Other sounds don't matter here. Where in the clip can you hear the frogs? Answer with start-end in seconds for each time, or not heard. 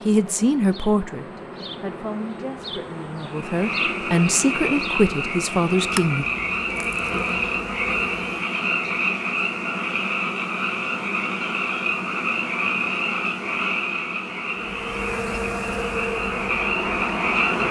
3.2-17.6.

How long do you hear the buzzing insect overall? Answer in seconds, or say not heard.
11 s.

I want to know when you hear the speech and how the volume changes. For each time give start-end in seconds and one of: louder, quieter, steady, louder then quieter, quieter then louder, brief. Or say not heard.
0.1-6.2 quieter then louder.